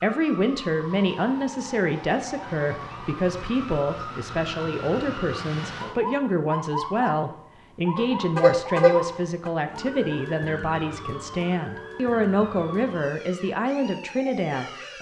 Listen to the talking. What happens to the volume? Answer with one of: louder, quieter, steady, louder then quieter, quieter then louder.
steady.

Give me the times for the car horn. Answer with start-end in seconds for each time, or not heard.
8.0-9.5.